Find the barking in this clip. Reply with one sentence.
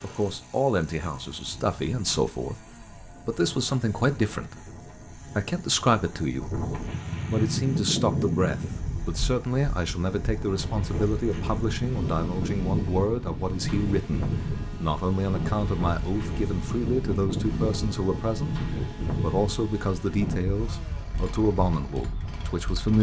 The barking can't be heard in this clip.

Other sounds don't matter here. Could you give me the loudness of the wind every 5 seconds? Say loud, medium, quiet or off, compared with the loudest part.
quiet, loud, loud, loud, medium.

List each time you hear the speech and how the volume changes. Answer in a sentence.
The speech can be heard briefly from 0.0 to 2.6 s; and from 3.2 to 22.9 s, at a steady volume.